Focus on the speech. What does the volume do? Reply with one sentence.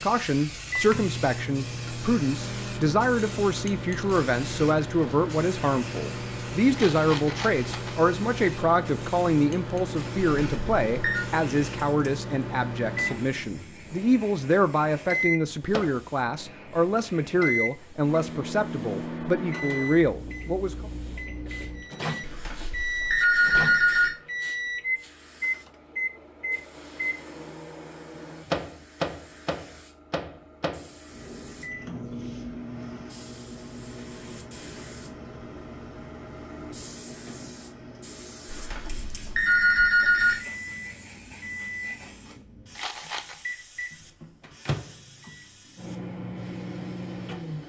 The volume of the speech stays about the same.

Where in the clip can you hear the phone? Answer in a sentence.
You can hear the phone from 10.4 to 11.2 s, from 22.2 to 24.1 s and from 38.5 to 40.4 s.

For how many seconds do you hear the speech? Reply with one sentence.
You can hear the speech for 21 seconds altogether.